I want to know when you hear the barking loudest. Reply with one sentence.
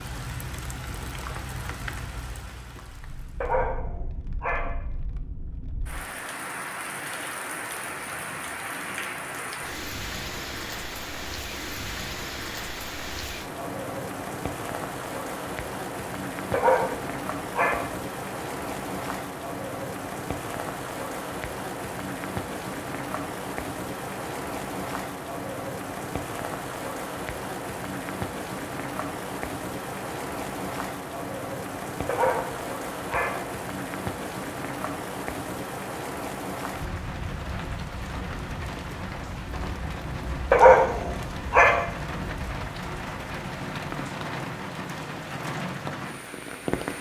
The volume of the barking peaks at 41 seconds.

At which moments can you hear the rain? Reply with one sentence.
The rain can be heard from 0.0 to 46.9 s.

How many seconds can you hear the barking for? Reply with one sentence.
The barking can be heard for 6 seconds in total.